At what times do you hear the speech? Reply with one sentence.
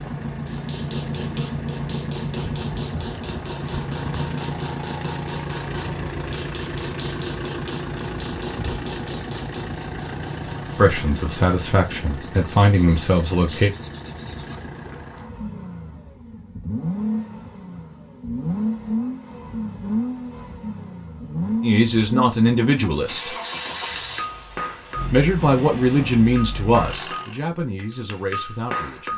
You can hear the speech from 10.8 to 13.8 s, from 21.6 to 23.4 s and from 25.1 to 29.1 s.